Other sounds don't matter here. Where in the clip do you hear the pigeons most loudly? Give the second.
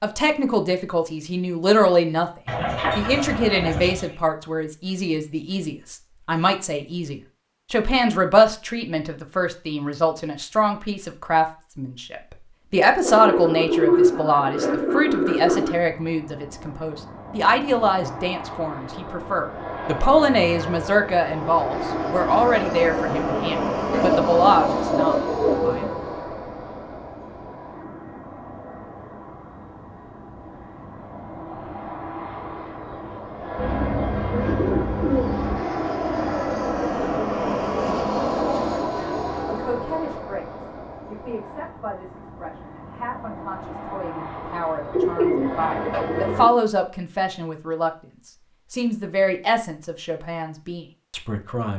14 s.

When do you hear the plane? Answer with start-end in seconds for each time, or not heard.
15.7-46.5.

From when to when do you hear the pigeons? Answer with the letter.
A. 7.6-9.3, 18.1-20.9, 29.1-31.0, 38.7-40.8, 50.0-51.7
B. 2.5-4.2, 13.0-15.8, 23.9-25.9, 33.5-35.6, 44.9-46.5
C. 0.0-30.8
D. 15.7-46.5
B.